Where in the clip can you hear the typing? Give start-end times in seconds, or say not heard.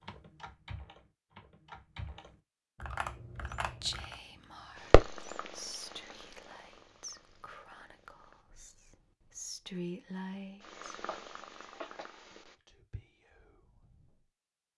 0.0-4.2.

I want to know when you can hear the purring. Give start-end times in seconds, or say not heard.
4.8-8.4, 10.6-12.6.